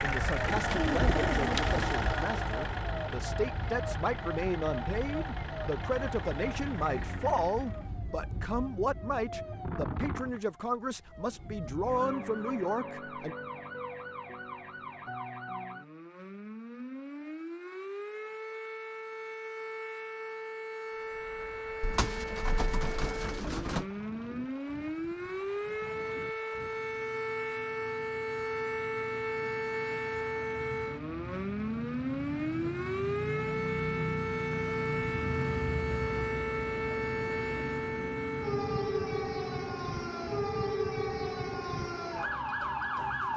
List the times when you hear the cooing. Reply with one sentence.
The cooing can be heard from 0.5 to 2.0 s and from 21.8 to 23.9 s.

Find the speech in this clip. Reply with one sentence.
You can hear the speech from 0.0 to 13.3 s.